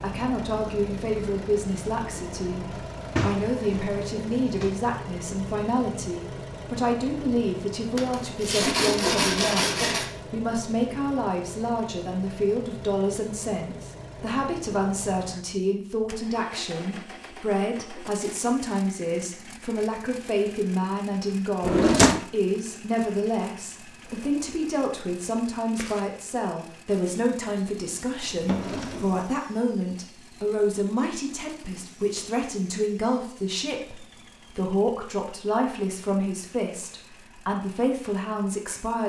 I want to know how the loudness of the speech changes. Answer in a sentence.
The loudness of the speech stays about the same.